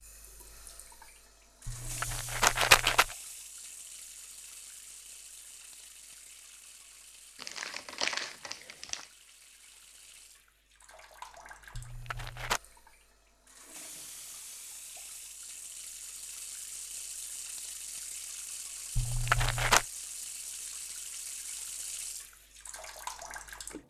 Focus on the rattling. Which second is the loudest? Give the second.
3 s.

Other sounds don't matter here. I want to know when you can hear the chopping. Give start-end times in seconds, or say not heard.
not heard.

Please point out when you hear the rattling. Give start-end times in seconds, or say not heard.
1.6-3.1, 11.7-12.6, 18.9-19.9.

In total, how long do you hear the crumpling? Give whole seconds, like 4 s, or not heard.
2 s.